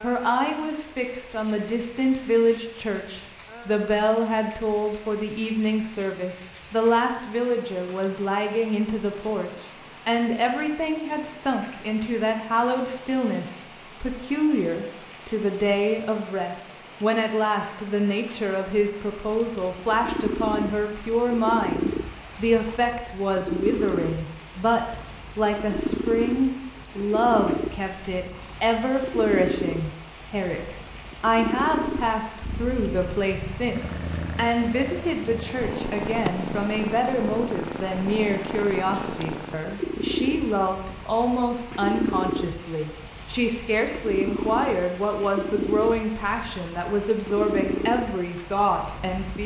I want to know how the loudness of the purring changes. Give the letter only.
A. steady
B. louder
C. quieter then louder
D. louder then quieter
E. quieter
A.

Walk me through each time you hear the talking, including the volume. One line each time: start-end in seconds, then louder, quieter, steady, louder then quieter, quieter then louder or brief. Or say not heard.
0.0-49.4 steady.